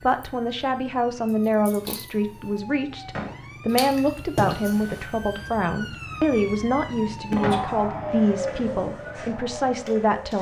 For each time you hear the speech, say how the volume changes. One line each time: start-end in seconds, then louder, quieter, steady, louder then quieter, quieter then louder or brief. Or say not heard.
0.0-10.3 steady.